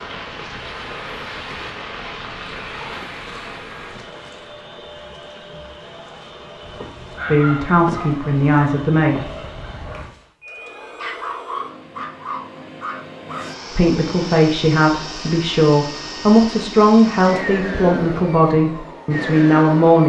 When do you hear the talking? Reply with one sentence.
The talking can be heard from 7.2 to 9.2 s and from 13.7 to 20.0 s.